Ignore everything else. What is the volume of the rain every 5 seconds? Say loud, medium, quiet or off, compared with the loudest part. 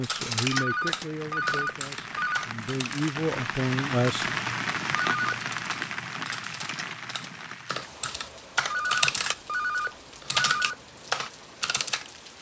loud, loud, quiet.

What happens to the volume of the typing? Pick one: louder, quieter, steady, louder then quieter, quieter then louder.
quieter then louder.